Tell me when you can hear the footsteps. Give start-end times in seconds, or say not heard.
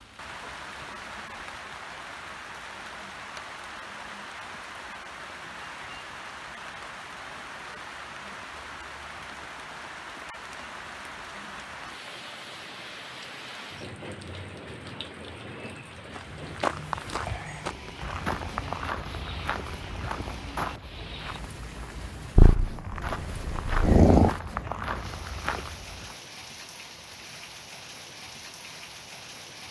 16.1-26.1.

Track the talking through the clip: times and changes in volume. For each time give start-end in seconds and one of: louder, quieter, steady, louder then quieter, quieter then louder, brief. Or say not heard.
not heard.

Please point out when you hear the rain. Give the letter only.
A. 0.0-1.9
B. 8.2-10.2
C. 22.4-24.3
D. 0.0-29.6
D.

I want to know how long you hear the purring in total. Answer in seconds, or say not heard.
2 s.